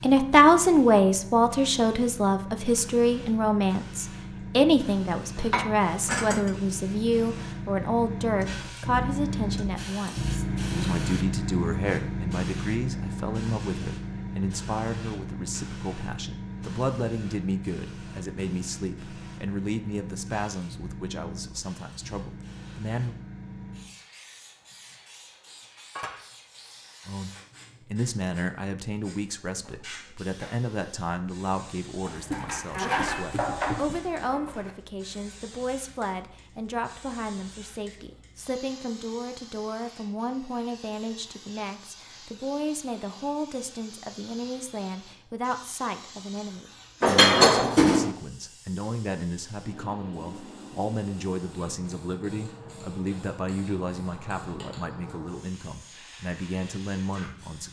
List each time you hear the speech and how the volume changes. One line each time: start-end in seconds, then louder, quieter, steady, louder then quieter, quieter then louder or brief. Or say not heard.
0.0-23.1 quieter
27.1-57.6 steady.